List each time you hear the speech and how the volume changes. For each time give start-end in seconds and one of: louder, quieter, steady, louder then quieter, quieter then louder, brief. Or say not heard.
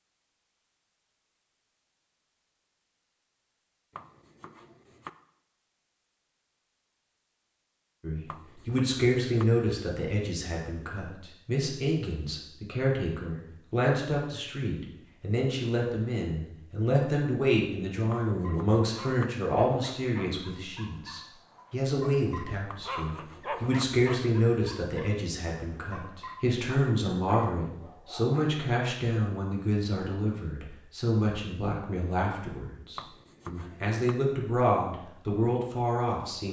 8.0-36.4 steady.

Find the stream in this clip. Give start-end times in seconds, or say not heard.
not heard.